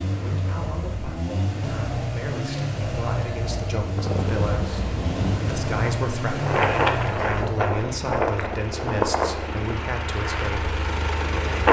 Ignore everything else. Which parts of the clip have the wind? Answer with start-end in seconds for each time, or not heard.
3.9-11.6.